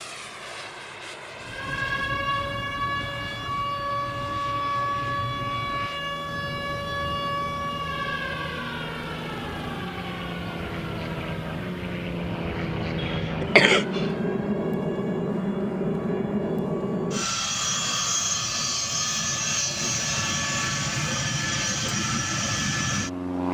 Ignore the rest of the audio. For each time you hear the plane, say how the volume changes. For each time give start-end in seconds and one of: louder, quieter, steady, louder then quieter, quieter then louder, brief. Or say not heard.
0.0-23.4 louder.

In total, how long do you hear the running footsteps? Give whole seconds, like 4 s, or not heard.
not heard.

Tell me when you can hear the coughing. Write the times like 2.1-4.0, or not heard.
12.9-14.1.